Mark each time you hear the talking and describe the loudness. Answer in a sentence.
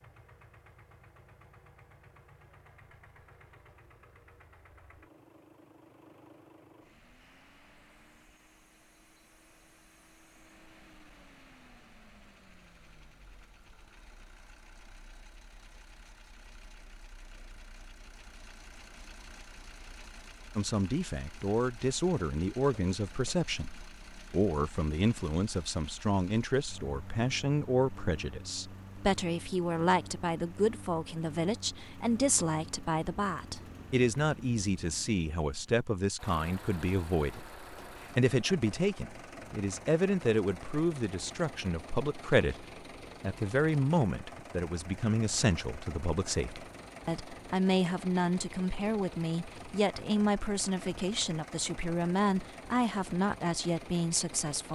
You can hear the talking from 20.6 to 54.6 s, at a steady volume.